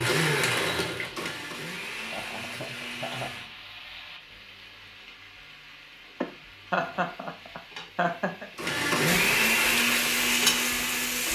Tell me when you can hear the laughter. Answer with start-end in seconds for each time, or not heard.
2.1-3.3, 6.2-8.5.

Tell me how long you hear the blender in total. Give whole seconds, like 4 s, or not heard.
6 s.